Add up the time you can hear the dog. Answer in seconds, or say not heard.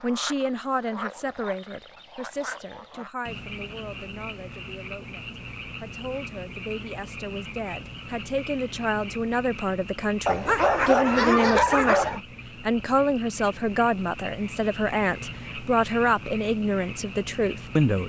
2 s.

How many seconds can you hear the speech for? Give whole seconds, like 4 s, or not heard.
18 s.